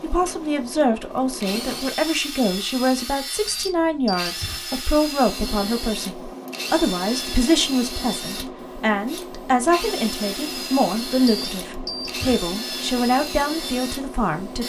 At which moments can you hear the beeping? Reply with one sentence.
You can hear the beeping from 3.5 to 4.6 s and from 11.2 to 12.4 s.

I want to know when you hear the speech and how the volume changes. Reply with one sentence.
You can hear the speech from 0.0 to 14.6 s, at a steady volume.